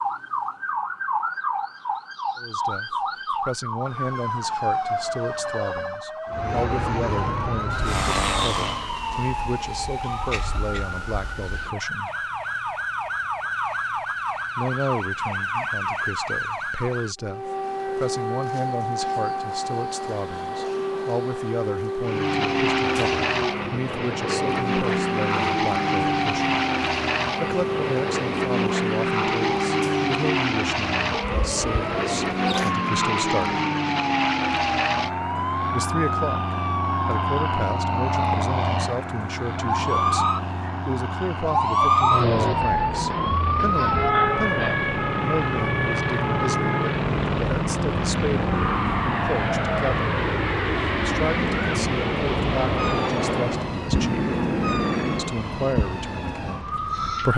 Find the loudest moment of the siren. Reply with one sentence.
The volume of the siren peaks at 42 seconds.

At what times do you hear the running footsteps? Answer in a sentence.
The running footsteps can't be heard in this clip.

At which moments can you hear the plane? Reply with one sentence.
The plane can be heard from 6.2 to 8.9 s and from 22.0 to 55.4 s.